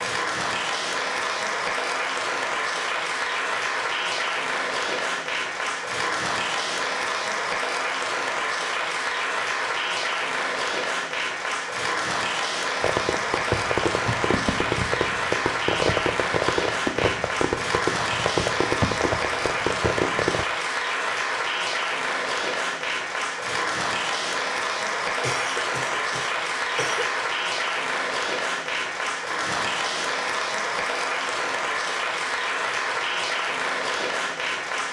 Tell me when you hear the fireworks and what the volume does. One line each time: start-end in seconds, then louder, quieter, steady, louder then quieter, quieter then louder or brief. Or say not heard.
12.8-20.4 steady.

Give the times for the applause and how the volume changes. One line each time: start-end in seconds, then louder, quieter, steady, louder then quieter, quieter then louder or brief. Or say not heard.
0.0-34.8 steady.